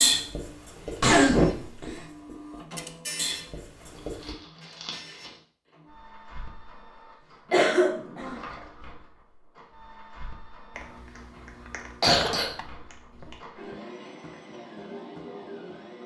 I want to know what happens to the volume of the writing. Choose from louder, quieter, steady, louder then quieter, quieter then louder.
quieter then louder.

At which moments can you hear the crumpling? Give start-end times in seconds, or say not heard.
4.0-5.4.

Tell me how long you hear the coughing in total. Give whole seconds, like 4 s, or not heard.
3 s.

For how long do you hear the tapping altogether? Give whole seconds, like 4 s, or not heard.
4 s.